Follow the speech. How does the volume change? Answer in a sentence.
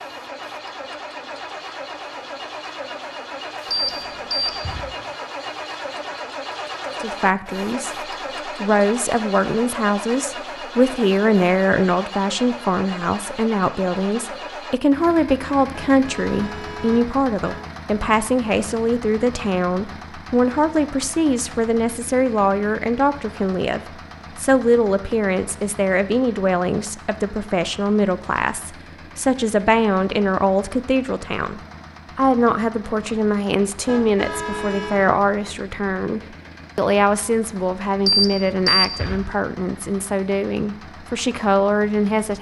The loudness of the speech stays about the same.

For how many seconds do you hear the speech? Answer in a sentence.
You can hear the speech for 35 seconds altogether.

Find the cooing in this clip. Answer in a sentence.
The cooing can't be heard in this clip.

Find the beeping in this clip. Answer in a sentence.
You can hear the beeping from 3.7 to 4.8 s and from 38.0 to 39.2 s.